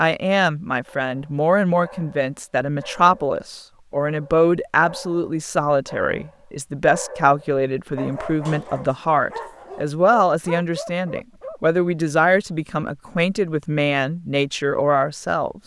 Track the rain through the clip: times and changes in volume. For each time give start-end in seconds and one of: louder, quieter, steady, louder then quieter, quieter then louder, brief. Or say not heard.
not heard.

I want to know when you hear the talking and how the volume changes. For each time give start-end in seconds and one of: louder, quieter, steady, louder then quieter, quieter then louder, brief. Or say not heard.
0.0-15.6 steady.